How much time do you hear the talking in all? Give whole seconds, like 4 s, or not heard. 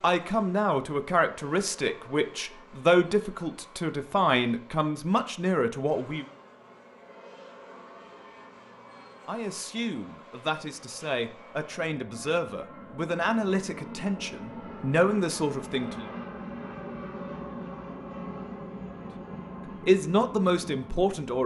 15 s.